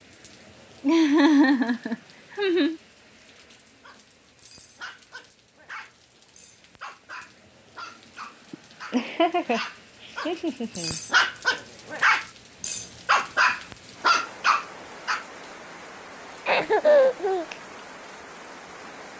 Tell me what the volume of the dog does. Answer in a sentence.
The loudness of the dog goes up.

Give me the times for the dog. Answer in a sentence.
The dog can be heard from 3.8 to 15.2 s.